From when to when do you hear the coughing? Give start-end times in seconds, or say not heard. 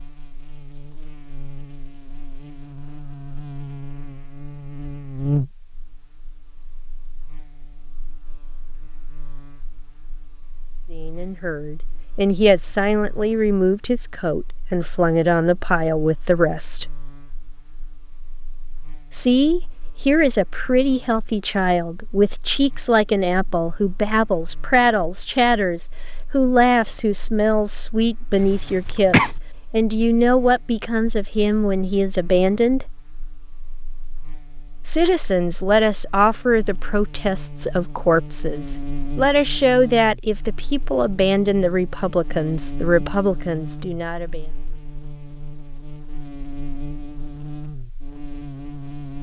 28.4-29.3.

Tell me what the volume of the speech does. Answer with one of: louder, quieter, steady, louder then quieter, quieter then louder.
steady.